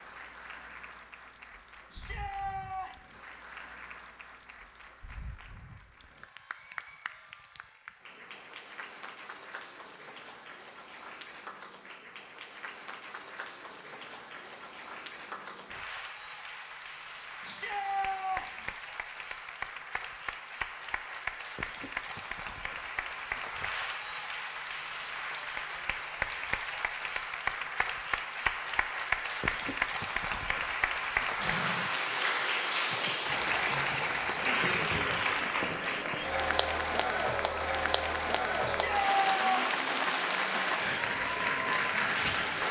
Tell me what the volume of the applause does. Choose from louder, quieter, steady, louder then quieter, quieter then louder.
louder.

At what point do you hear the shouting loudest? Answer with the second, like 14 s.
39 s.